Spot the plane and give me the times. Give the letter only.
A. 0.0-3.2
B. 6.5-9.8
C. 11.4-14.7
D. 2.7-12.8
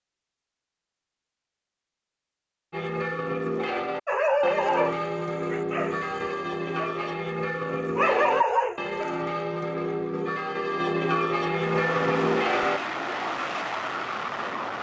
C.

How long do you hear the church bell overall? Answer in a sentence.
You can hear the church bell for 10 seconds altogether.